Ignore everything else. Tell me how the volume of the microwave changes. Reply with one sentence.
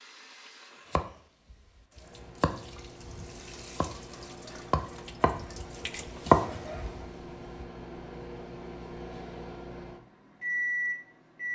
The loudness of the microwave goes up.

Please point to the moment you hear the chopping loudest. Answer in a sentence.
The volume of the chopping peaks at 6 seconds.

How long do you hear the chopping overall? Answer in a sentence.
The chopping can be heard for 7 seconds in total.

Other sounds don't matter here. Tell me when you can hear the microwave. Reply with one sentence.
You can hear the microwave from 1.9 to 11.5 s.